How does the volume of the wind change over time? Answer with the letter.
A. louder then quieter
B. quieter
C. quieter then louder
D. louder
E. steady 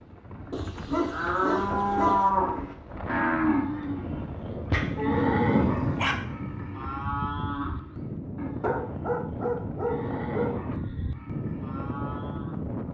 D.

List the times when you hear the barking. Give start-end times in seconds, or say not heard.
0.5-2.3, 4.7-6.2, 8.6-10.6.